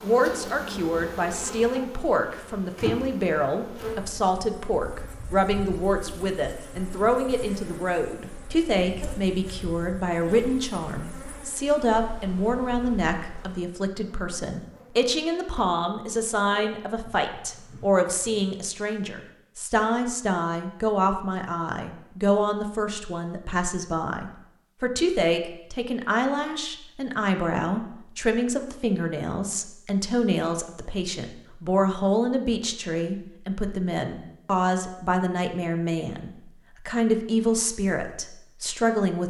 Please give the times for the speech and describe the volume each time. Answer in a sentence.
The speech can be heard from 0.0 to 39.2 s, at a steady volume.